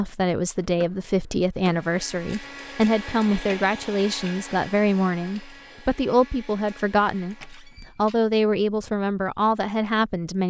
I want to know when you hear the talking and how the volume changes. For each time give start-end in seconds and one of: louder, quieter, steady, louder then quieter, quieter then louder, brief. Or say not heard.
0.0-10.4 steady.